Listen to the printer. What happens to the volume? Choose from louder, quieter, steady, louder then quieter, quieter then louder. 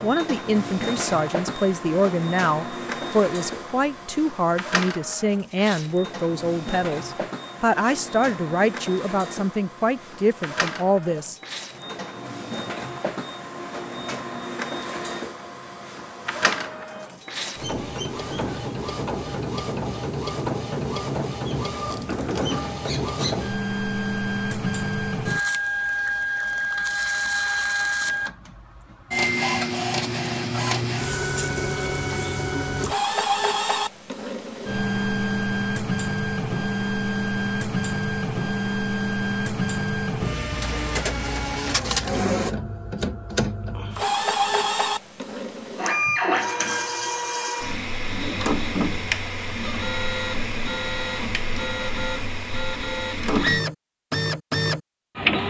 louder.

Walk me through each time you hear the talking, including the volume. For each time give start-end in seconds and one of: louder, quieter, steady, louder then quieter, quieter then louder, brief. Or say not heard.
0.0-11.3 steady.